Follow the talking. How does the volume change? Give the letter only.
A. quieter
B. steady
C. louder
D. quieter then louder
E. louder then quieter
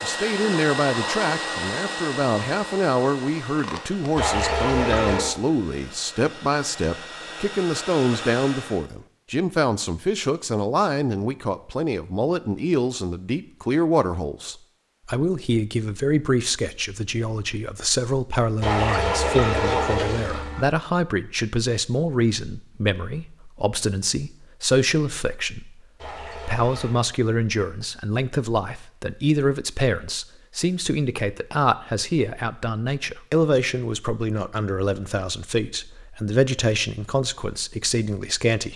B.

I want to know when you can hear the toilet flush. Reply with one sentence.
The toilet flush can be heard from 4.2 to 5.3 s, from 18.6 to 20.6 s and from 25.9 to 27.0 s.